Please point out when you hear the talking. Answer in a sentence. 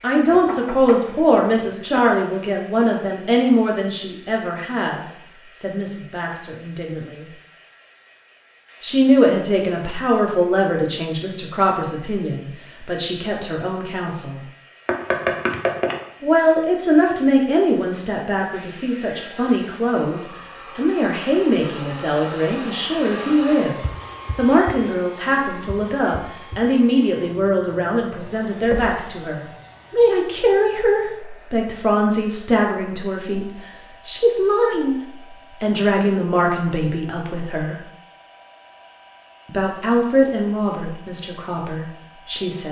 The talking can be heard from 0.0 to 7.2 s, from 8.8 to 14.4 s, from 16.2 to 23.8 s, from 24.4 to 37.9 s and from 39.5 to 42.6 s.